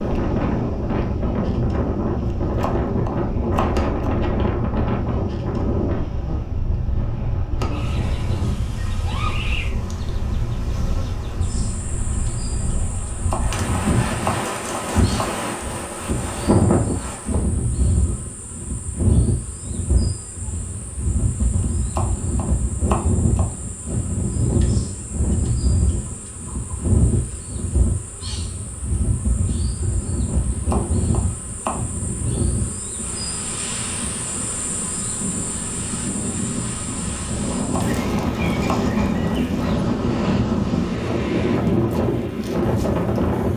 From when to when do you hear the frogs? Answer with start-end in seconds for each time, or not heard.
not heard.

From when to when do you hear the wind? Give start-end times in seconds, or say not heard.
0.0-43.5.